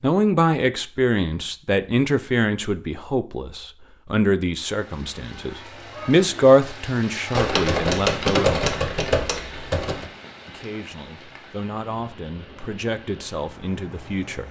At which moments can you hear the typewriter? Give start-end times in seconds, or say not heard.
7.3-10.1.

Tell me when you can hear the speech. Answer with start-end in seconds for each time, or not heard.
0.0-8.7, 10.4-14.4.